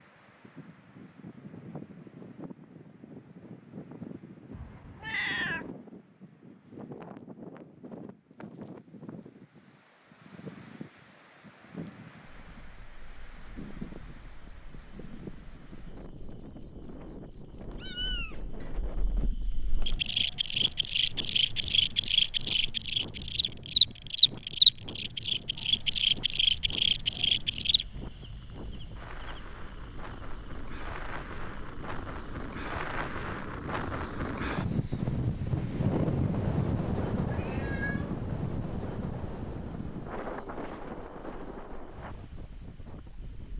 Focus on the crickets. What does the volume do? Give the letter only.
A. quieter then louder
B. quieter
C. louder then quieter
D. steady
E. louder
D.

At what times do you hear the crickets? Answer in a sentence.
The crickets can be heard from 12.3 to 43.5 s.